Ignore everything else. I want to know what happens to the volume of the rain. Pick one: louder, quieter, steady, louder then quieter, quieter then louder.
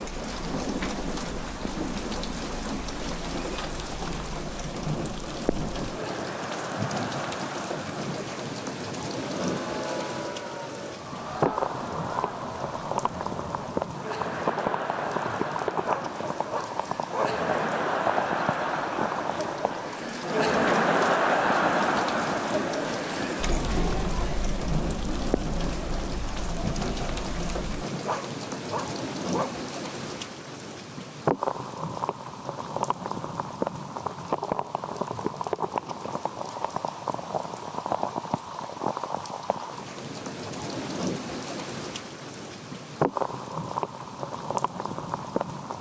steady.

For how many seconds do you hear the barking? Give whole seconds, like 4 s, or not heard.
3 s.